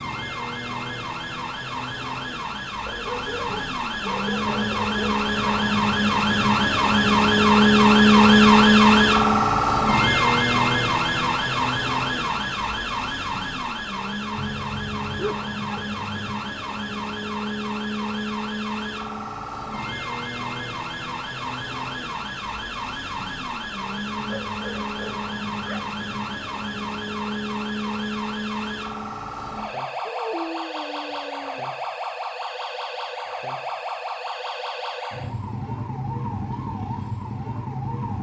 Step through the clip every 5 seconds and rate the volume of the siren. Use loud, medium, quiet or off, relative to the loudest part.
quiet, loud, medium, quiet, quiet, quiet, quiet, quiet.